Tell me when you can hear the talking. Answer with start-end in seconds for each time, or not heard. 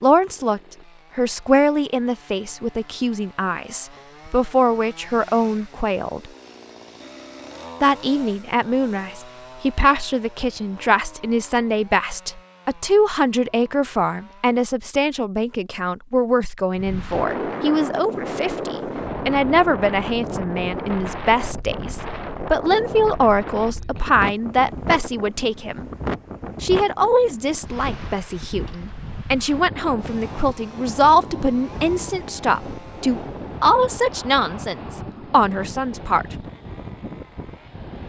0.0-6.3, 7.8-25.9, 26.6-36.2.